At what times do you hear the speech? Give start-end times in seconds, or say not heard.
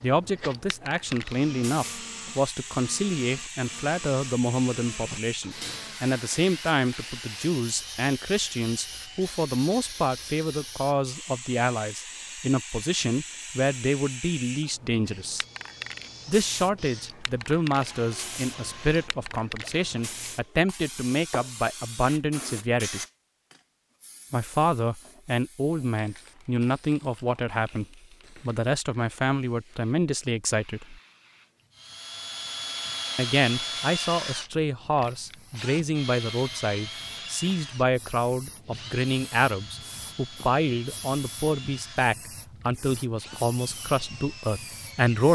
0.0-15.4, 16.2-23.0, 24.3-31.0, 33.1-45.2.